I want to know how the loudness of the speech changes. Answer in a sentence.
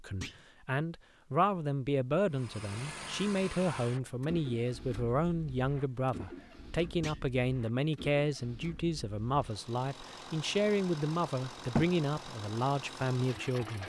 The loudness of the speech stays about the same.